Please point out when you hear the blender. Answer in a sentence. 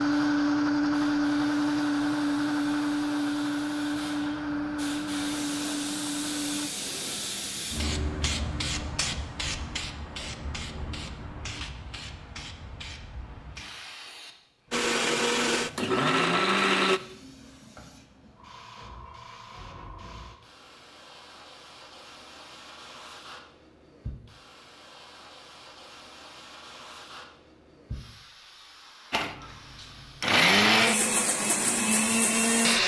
You can hear the blender from 0.0 to 6.7 s, from 14.7 to 17.0 s and from 29.1 to 32.8 s.